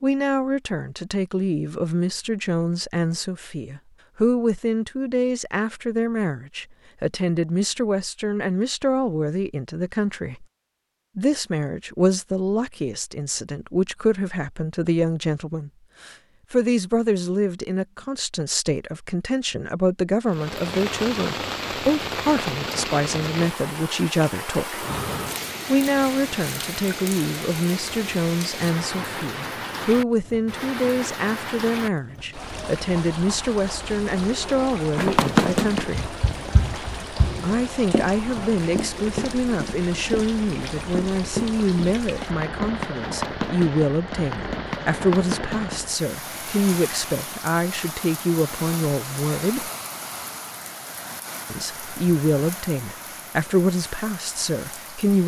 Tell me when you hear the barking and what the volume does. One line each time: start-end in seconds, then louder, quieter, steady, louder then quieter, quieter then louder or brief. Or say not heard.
not heard.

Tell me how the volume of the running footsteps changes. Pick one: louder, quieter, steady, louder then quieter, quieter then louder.
quieter.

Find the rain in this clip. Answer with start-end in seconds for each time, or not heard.
20.2-55.2.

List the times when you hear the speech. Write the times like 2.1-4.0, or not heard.
0.0-10.4, 11.2-24.9, 25.6-36.1, 37.4-49.7, 51.5-55.2.